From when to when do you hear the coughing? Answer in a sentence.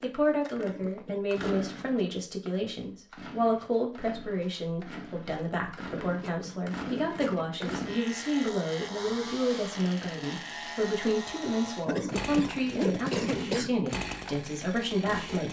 You can hear the coughing from 0.6 to 1.2 s, from 6.0 to 7.7 s and from 11.8 to 13.8 s.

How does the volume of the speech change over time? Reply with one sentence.
The volume of the speech stays about the same.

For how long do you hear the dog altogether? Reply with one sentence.
You can't hear the dog here.